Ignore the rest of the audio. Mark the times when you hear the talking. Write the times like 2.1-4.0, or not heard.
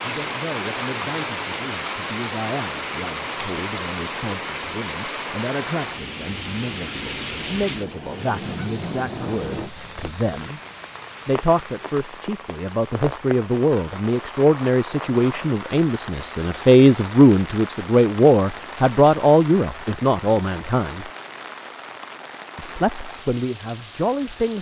0.0-10.6, 11.2-21.1, 22.6-24.5.